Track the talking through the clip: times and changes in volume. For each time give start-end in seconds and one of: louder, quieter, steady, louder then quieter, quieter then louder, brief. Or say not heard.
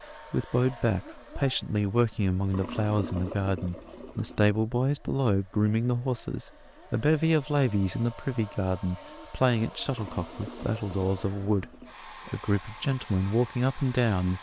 0.3-11.7 steady
12.2-14.3 brief.